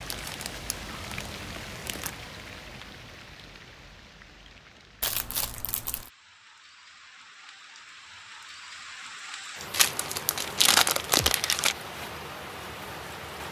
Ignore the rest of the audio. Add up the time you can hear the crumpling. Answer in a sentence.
The crumpling can be heard for 5 seconds in total.